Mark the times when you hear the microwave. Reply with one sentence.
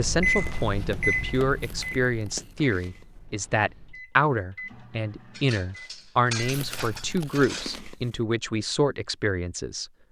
The microwave can be heard from 0.0 to 7.2 s.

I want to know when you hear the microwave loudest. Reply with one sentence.
The loudest moment of the microwave is at 1 second.